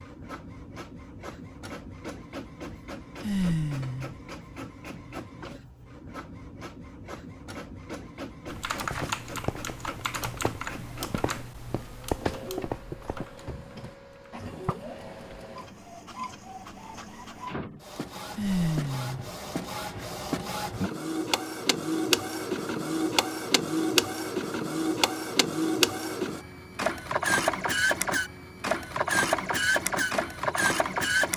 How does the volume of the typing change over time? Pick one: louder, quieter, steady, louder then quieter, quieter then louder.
quieter.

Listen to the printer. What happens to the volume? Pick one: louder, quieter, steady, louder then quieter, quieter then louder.
louder.